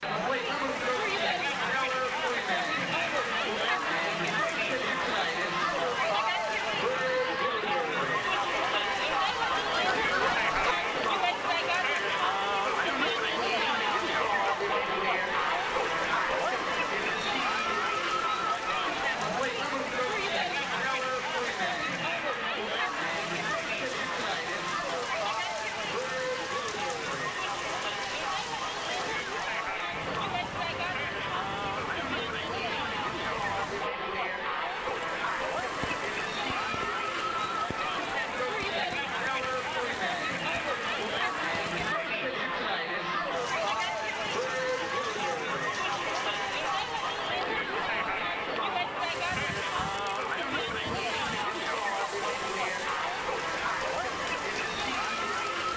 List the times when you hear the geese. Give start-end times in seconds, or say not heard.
9.2-10.8.